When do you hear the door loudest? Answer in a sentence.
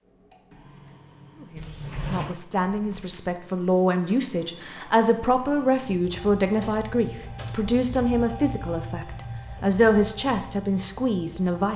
The loudest moment of the door is at 2 seconds.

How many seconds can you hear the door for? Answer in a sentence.
You can hear the door for 2 seconds altogether.